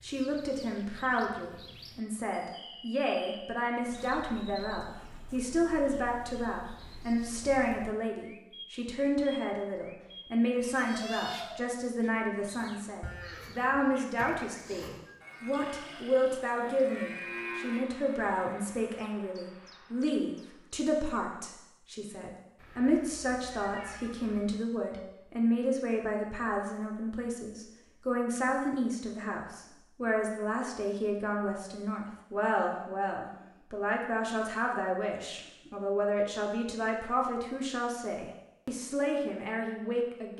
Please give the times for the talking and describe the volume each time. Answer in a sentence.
The talking can be heard from 0.0 to 40.3 s, at a steady volume.